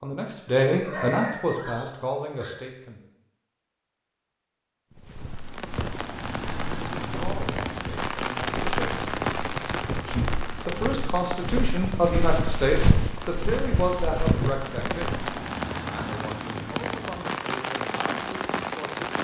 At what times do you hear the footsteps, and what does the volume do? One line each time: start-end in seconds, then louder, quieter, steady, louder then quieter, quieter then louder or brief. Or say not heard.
5.0-15.2 louder.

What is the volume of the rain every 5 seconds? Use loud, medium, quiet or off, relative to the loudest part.
off, loud, medium, loud.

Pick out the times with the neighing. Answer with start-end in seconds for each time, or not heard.
0.7-2.6.